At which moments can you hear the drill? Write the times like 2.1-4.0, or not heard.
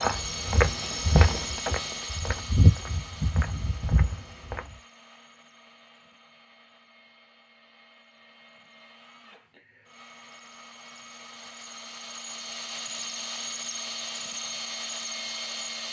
0.0-15.8.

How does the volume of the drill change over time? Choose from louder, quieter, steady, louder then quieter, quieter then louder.
quieter then louder.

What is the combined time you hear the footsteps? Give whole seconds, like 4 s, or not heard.
5 s.